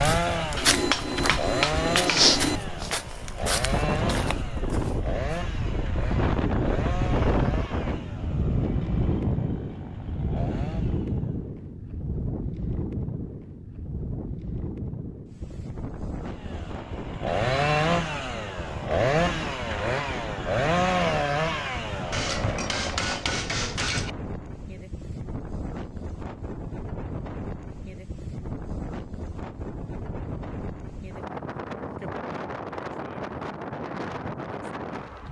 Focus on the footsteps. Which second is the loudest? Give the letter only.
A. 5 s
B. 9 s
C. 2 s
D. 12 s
C.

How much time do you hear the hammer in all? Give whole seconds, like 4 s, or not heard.
4 s.